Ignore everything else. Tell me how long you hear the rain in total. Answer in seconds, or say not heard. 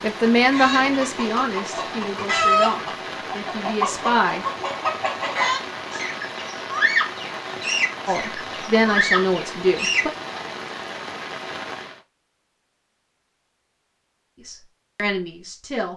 12 s.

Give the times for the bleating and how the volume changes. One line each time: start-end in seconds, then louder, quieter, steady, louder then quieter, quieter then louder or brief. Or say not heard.
not heard.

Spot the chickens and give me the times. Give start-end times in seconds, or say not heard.
0.5-10.1.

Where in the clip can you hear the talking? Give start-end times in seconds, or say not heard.
0.0-4.5, 8.1-10.1, 14.3-15.9.